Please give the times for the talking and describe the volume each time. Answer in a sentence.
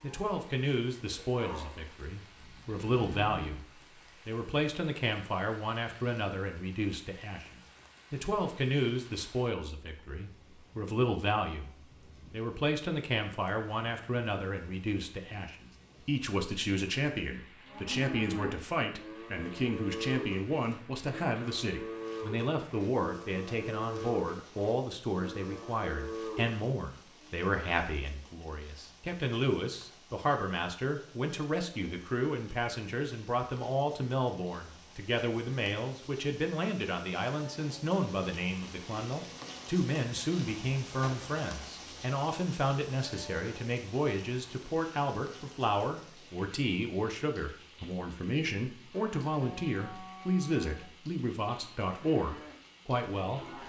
You can hear the talking from 0.0 to 53.6 s, at a steady volume.